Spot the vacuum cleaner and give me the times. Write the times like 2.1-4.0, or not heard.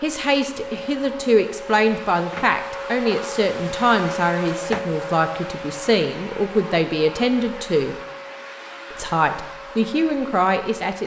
0.0-11.0.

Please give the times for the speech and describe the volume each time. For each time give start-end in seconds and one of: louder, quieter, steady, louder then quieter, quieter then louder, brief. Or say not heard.
0.0-8.0 steady
8.9-11.0 brief.